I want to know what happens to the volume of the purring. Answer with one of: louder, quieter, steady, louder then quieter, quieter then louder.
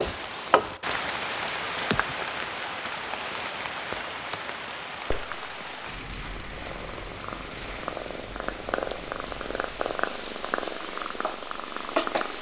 louder.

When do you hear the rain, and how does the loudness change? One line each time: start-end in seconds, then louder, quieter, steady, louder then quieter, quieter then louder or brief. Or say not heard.
0.0-10.1 quieter.